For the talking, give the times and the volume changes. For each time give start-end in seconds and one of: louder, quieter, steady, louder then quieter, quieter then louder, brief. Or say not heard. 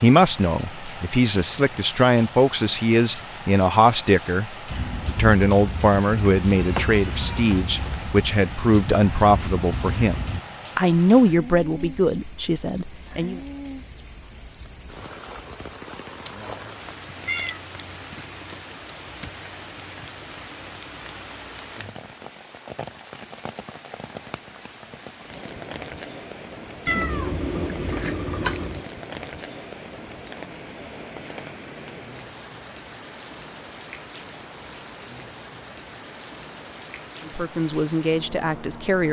0.0-13.4 steady
37.2-39.0 brief.